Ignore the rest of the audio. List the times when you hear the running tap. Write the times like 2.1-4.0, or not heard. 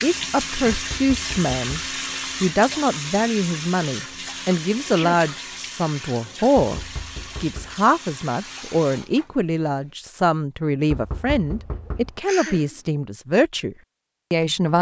0.0-9.9.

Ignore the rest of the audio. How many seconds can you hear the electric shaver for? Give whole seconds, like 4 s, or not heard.
not heard.